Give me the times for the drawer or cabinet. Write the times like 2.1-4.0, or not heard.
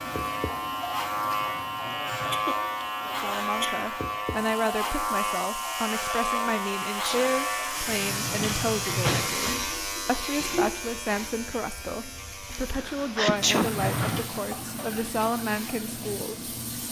1.2-2.5, 7.8-9.4, 13.6-14.3.